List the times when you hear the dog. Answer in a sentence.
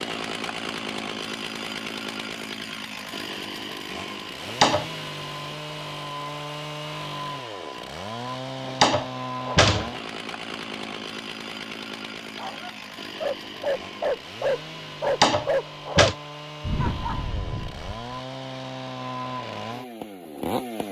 You can hear the dog from 12.3 to 18.1 s.